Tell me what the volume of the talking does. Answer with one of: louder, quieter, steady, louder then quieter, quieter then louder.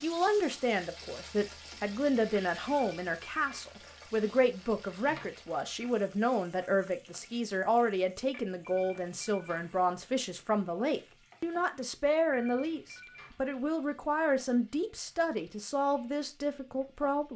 steady.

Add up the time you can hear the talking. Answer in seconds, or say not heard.
17 s.